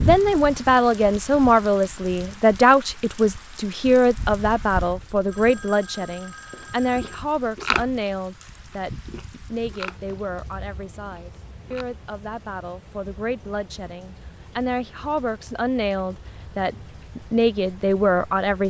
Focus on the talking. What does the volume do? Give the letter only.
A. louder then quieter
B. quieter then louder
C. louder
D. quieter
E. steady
B.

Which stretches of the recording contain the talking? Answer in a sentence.
You can hear the talking from 0.0 to 18.6 s.